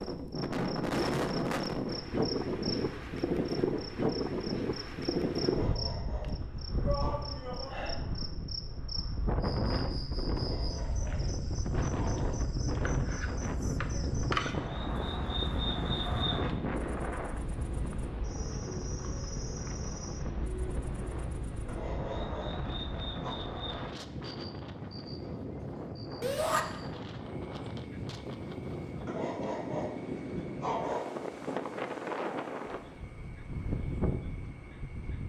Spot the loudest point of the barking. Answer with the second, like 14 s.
31 s.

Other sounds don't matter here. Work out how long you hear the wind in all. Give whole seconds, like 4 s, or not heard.
35 s.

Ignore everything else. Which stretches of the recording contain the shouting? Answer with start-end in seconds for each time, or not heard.
6.8-8.0, 26.2-26.6.